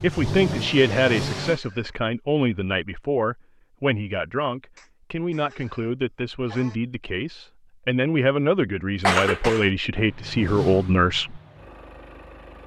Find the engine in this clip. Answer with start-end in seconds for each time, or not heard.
0.0-1.6, 9.9-12.6.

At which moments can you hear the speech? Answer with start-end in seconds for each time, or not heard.
0.0-11.4.